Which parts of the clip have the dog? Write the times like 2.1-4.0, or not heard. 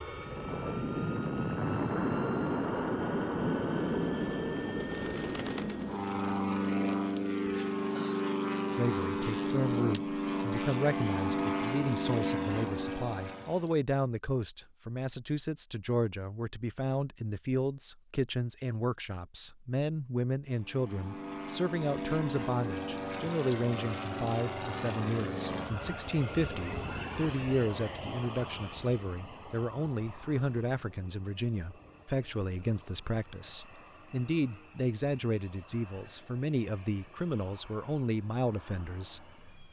not heard.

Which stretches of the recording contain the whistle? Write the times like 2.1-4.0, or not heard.
not heard.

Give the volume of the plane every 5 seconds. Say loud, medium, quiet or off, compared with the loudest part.
loud, loud, loud, off, medium, medium, quiet, quiet.